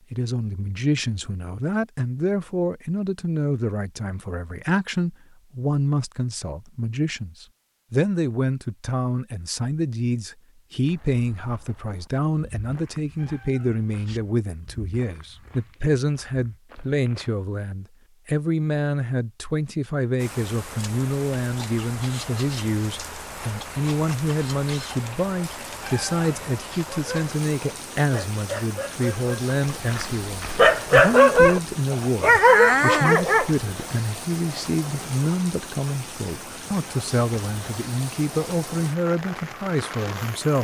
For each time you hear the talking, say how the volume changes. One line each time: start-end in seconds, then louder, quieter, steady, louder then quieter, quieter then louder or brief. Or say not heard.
0.1-40.6 steady.